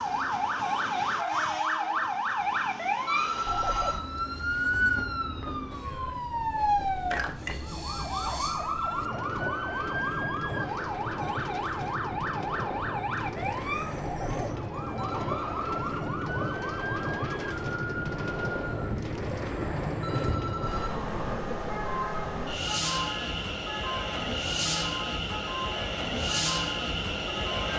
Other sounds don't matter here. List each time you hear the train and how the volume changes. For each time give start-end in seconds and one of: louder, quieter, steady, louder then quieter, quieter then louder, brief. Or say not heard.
0.0-27.7 louder.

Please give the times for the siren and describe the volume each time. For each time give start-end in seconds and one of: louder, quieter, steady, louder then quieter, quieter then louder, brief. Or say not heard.
0.0-27.7 quieter.